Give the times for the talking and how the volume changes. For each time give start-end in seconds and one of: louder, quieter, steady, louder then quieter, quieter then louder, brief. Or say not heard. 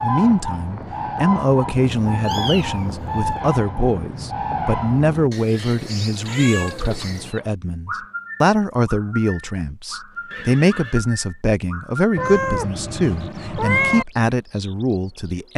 0.0-15.5 steady.